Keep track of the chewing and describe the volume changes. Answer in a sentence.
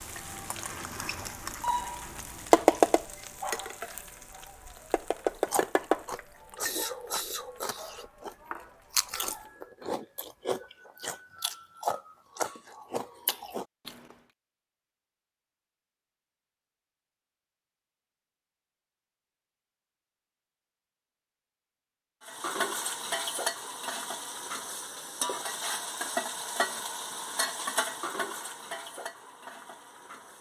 The loudness of the chewing stays about the same.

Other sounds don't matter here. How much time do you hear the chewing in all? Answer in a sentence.
You can hear the chewing for 9 seconds altogether.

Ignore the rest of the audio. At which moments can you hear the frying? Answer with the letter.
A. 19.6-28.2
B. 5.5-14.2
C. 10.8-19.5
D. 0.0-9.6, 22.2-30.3
D.